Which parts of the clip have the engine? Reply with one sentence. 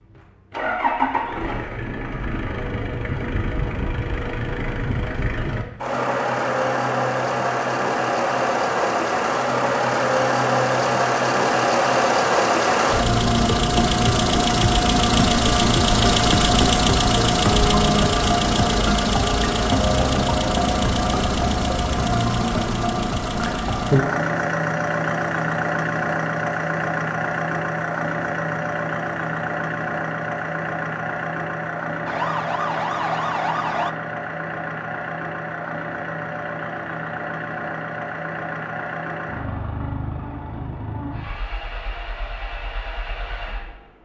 You can hear the engine from 0.0 to 44.0 s.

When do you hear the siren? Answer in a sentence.
You can hear the siren from 32.0 to 34.0 s.